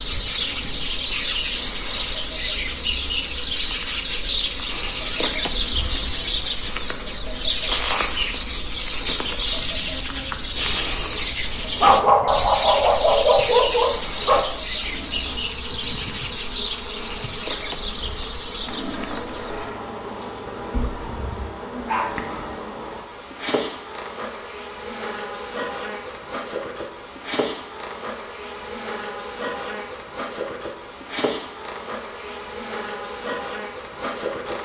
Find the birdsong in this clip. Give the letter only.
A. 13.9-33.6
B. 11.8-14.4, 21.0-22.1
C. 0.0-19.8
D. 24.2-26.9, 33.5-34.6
C.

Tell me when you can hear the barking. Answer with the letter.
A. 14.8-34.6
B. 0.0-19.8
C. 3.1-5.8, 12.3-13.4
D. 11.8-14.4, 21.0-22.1
D.